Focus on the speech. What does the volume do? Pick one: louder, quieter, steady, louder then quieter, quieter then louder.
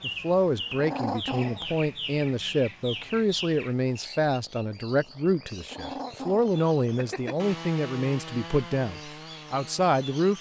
steady.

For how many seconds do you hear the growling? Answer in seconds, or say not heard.
3 s.